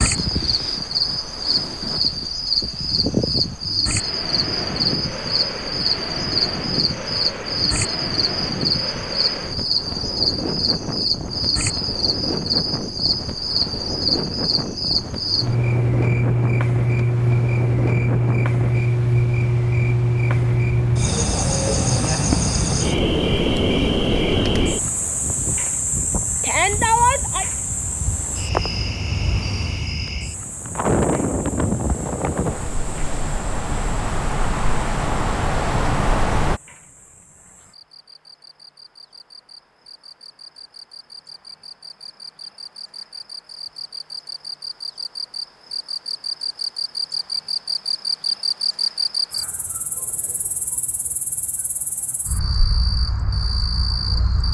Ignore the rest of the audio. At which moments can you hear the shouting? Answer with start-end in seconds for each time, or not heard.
26.4-27.4.